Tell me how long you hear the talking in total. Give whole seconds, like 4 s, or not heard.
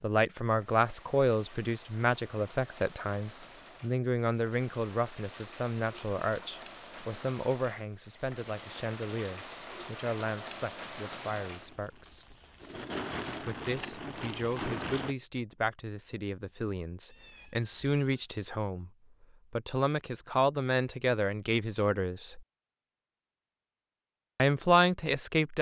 22 s.